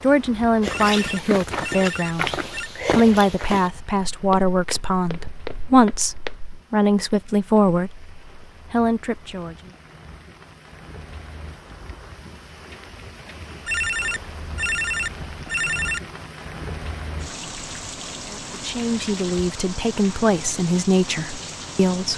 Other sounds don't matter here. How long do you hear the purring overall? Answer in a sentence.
The purring can't be heard in this clip.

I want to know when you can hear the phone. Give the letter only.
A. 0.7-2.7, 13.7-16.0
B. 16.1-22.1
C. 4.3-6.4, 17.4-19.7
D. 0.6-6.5
A.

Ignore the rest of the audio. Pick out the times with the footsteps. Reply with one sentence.
The footsteps can be heard from 0.6 to 6.5 s.